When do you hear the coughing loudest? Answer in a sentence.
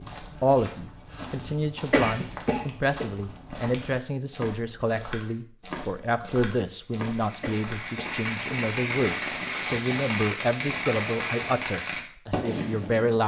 The loudest moment of the coughing is at 2 seconds.